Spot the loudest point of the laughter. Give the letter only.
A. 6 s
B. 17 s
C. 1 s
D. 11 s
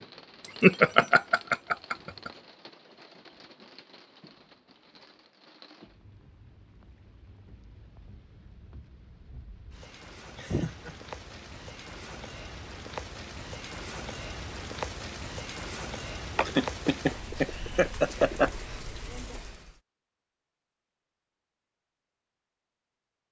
C.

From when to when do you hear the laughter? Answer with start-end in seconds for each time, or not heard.
0.4-2.3, 10.3-10.9, 16.4-18.6.